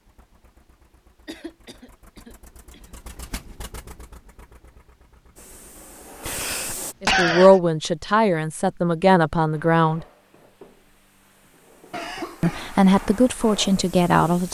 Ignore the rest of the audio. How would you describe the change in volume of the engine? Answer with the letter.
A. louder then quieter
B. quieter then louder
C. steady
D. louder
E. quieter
A.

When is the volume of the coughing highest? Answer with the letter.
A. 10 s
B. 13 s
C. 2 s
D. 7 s
D.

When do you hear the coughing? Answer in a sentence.
The coughing can be heard from 1.2 to 2.8 s, from 6.2 to 7.6 s and from 11.9 to 12.7 s.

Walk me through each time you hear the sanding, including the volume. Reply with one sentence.
You can't hear the sanding here.